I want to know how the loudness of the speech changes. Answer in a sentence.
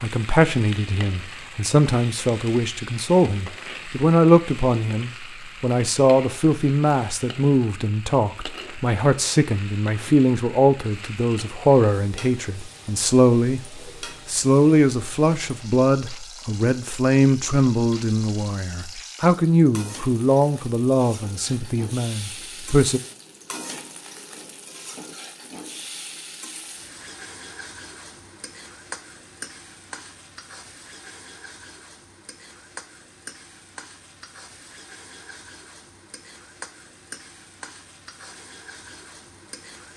The loudness of the speech stays about the same.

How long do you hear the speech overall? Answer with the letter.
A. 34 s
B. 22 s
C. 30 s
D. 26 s
B.